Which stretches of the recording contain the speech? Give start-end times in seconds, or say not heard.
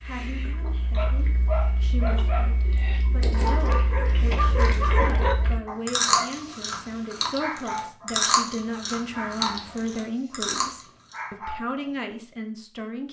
0.0-13.0.